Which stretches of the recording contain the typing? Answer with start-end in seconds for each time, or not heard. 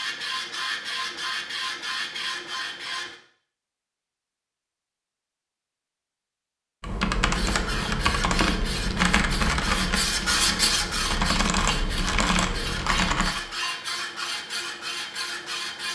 6.8-13.3.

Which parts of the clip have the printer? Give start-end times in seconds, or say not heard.
0.0-3.1, 7.3-15.8.